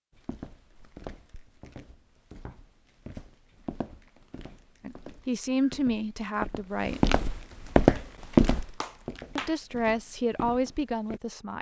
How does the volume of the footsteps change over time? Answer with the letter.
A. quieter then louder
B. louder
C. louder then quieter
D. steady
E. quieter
C.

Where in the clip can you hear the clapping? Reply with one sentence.
The clapping can be heard from 8.0 to 9.6 s.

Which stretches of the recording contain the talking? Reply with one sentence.
The talking can be heard from 4.8 to 7.2 s and from 9.3 to 11.5 s.